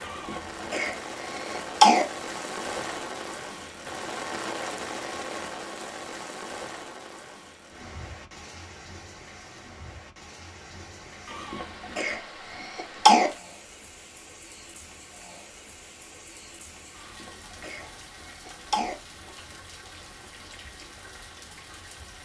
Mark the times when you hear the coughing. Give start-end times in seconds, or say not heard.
0.1-2.0, 11.2-13.3, 16.9-18.9.